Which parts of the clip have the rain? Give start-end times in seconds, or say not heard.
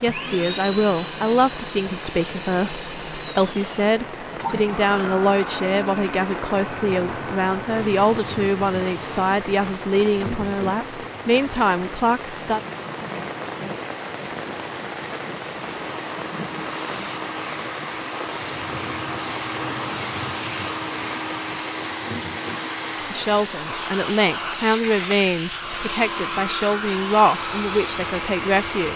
0.0-28.9.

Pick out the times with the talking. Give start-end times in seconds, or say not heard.
0.0-12.6, 23.1-28.9.